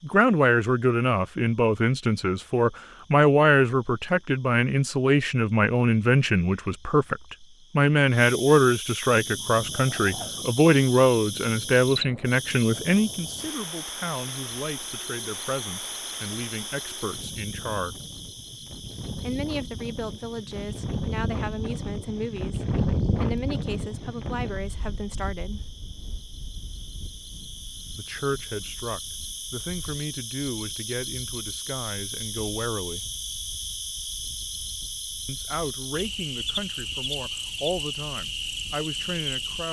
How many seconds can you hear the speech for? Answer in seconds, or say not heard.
34 s.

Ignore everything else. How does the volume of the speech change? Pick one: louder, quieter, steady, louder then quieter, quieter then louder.
quieter.